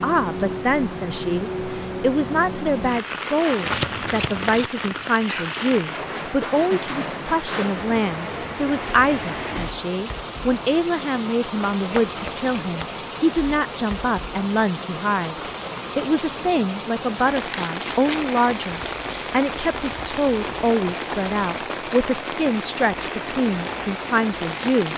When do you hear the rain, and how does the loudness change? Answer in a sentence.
You can hear the rain from 0.0 to 24.9 s, at a steady volume.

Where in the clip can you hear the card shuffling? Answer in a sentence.
You can hear the card shuffling from 3.6 to 4.7 s, from 11.9 to 12.9 s and from 17.5 to 19.2 s.